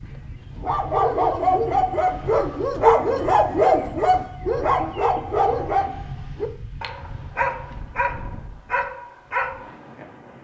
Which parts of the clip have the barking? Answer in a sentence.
You can hear the barking from 0.6 to 10.1 s.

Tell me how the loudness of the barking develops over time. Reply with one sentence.
The loudness of the barking goes down.